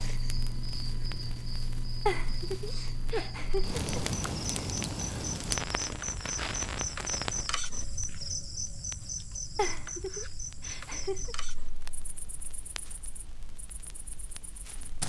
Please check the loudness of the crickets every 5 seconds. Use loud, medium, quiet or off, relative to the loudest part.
medium, loud, medium.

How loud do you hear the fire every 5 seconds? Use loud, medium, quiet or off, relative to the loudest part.
loud, loud, quiet.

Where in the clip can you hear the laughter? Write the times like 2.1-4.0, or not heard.
2.0-3.9, 9.6-11.3.